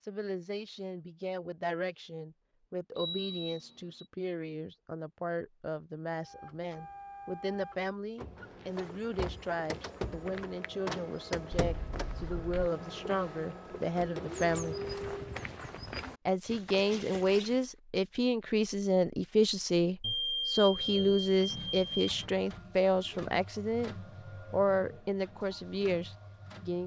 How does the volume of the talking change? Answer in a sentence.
The volume of the talking goes up.